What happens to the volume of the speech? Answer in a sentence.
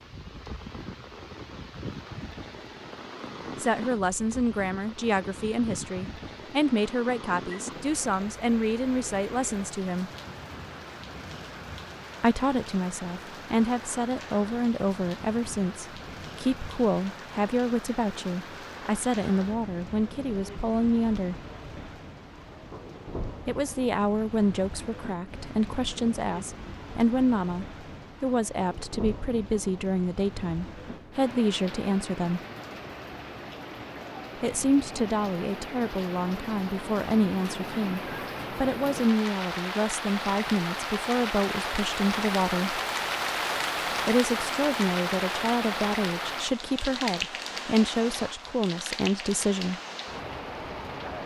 The loudness of the speech stays about the same.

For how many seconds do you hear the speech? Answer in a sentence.
The speech can be heard for 39 seconds in total.